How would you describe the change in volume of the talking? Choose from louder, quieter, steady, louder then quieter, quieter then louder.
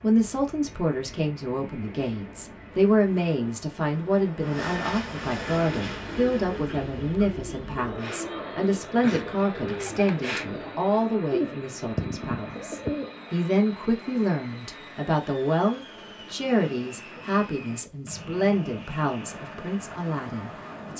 steady.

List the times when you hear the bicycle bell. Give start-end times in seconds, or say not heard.
not heard.